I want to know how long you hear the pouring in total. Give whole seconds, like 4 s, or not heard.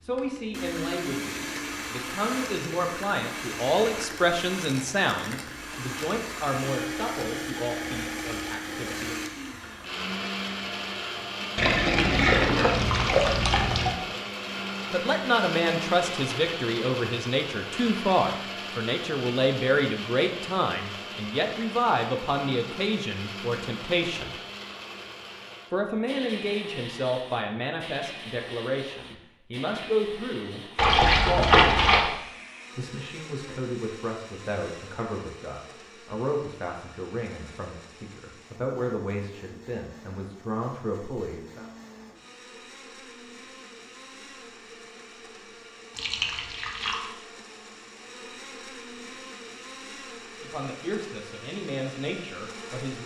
5 s.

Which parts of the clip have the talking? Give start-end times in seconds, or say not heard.
0.0-9.2, 14.9-24.4, 25.7-31.6, 32.8-41.6, 50.4-53.0.